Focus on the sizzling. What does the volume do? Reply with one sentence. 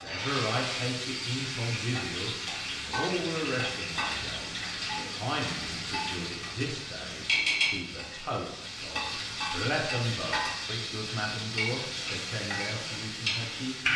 The volume of the sizzling stays about the same.